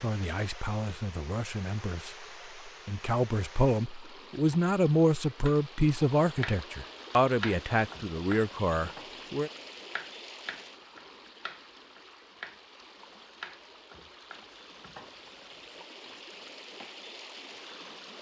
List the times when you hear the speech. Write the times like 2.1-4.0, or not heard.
0.0-9.5.